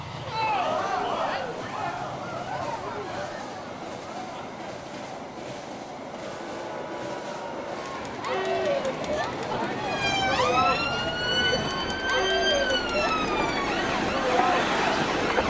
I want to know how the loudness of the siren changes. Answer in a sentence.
The volume of the siren goes down.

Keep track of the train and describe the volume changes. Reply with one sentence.
The volume of the train goes up.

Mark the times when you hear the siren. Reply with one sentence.
The siren can be heard from 9.8 to 15.4 s.